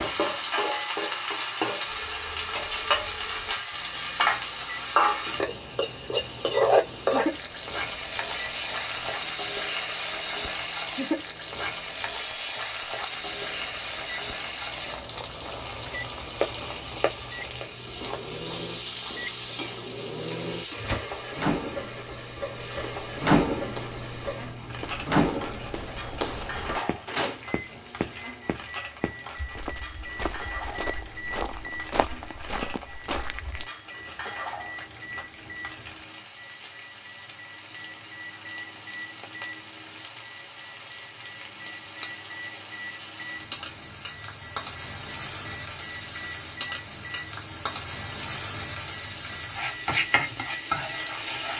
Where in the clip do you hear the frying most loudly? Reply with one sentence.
The loudest moment of the frying is at 7 seconds.